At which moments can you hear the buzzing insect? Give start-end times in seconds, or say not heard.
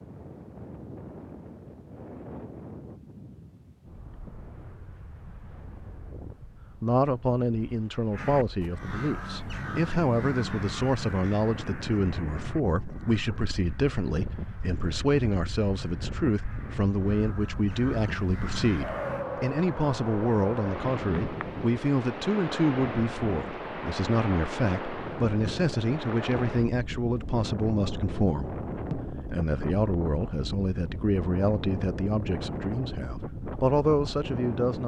not heard.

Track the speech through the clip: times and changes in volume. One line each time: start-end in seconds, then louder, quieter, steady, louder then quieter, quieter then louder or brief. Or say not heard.
6.8-34.8 steady.